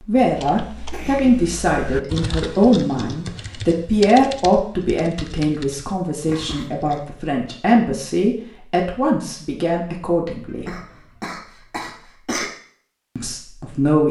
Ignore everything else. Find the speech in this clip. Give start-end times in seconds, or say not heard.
0.1-10.7, 13.2-14.0.